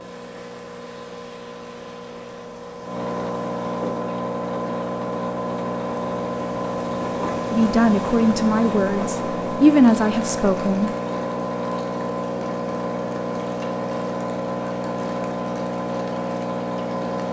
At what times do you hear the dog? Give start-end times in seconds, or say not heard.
not heard.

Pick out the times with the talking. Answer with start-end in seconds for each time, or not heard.
7.5-10.9.